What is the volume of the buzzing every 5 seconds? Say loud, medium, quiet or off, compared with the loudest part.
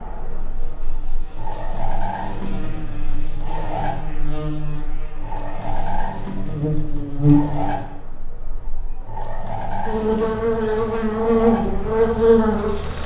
quiet, medium, loud.